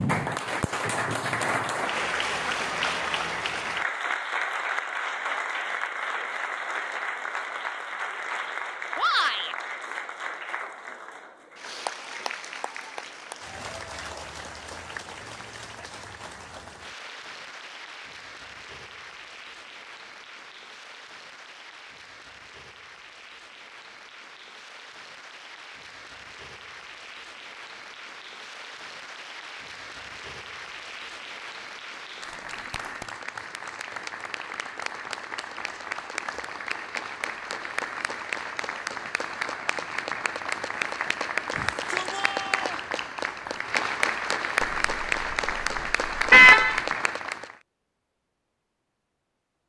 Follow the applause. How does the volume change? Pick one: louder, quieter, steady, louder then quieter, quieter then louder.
quieter then louder.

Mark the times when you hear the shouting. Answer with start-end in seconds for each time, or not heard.
8.9-9.6, 41.5-42.9.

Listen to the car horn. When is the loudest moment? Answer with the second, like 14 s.
46 s.